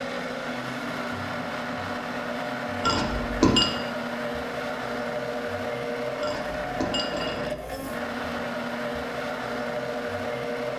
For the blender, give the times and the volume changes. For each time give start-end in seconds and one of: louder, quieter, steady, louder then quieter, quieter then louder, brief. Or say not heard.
0.0-10.7 steady.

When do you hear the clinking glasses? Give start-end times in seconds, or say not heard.
2.8-3.8, 6.2-8.0.